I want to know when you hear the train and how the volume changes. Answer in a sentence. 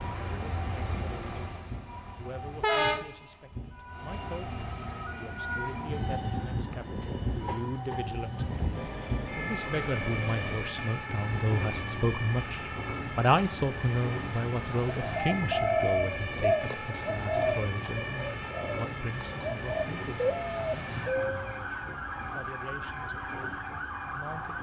You can hear the train from 0.0 to 24.5 s, getting quieter.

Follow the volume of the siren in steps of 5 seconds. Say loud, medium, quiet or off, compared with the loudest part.
medium, loud, loud, loud, loud.